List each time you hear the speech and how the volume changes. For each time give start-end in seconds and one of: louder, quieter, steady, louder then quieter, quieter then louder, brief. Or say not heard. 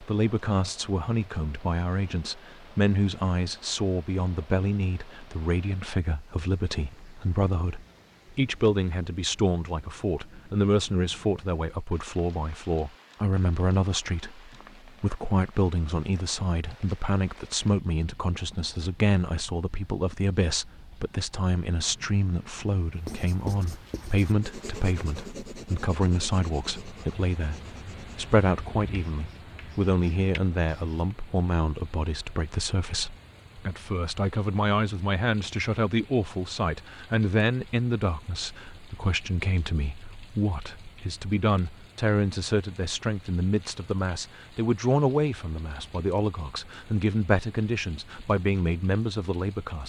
0.0-49.8 steady.